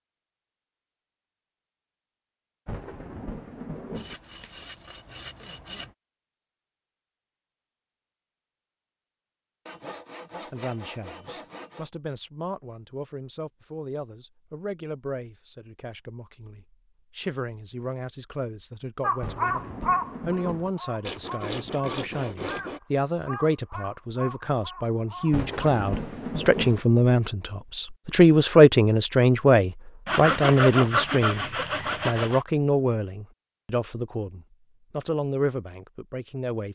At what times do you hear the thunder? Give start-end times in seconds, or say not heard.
2.6-4.2, 19.2-20.7, 25.3-26.8.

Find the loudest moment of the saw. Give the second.
31 s.